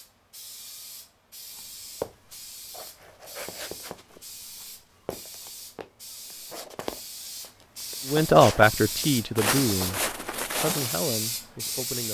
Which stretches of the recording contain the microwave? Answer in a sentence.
The microwave can't be heard in this clip.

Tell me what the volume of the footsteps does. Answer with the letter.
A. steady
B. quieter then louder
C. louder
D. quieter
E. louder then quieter
B.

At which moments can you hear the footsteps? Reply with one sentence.
The footsteps can be heard from 1.6 to 11.1 s.